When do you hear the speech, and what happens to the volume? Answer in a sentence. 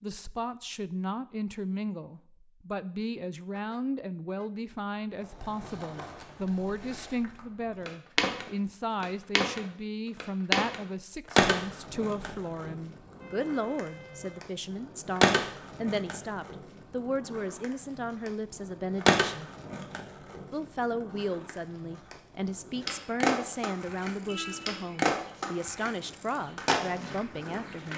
You can hear the speech from 0.0 to 19.5 s, at a steady volume; and from 20.5 to 27.9 s, at a steady volume.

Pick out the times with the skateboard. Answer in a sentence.
The skateboard can be heard from 5.2 to 27.9 s.